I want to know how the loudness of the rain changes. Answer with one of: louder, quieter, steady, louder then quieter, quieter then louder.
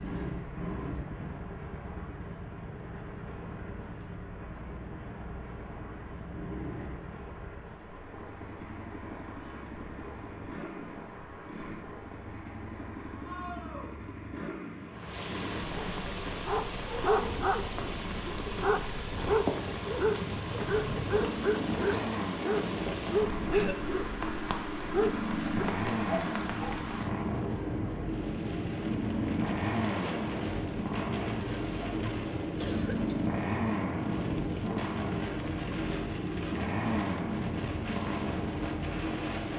louder.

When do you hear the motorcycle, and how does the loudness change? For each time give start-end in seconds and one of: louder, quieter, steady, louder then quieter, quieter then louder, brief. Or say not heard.
0.0-39.5 louder.